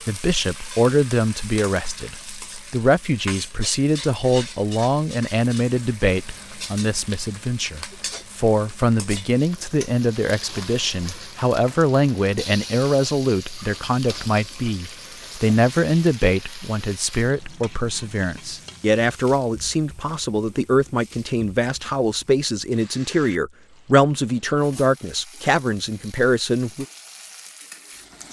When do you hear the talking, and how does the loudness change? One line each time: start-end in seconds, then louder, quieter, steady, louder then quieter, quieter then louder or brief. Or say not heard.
0.1-26.9 steady.